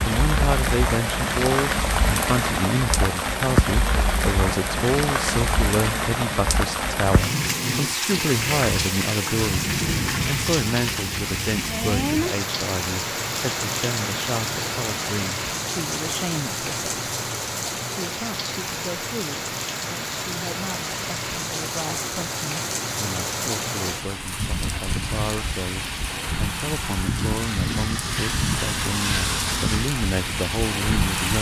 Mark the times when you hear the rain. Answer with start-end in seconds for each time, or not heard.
0.0-31.3.